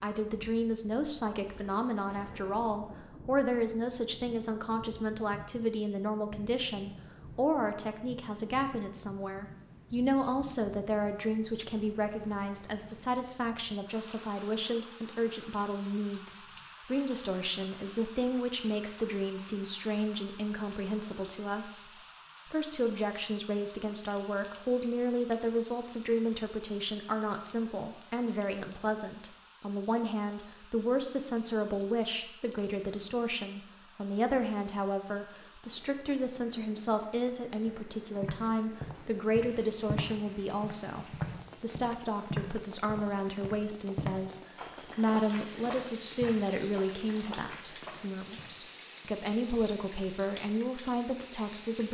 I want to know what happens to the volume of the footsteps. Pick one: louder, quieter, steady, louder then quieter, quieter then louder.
quieter.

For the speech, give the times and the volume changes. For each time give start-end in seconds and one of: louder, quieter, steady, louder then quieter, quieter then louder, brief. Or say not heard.
0.0-51.8 steady.